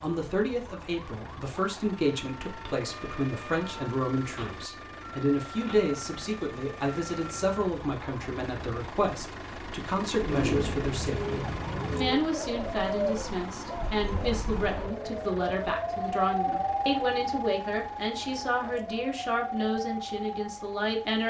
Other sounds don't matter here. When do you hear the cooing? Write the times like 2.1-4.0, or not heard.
10.2-15.2.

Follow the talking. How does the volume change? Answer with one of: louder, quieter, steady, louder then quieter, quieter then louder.
steady.